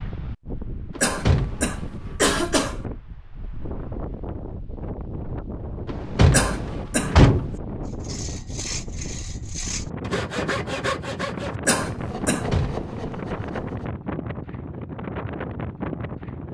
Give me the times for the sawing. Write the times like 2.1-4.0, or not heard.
7.8-13.9.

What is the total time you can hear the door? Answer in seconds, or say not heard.
4 s.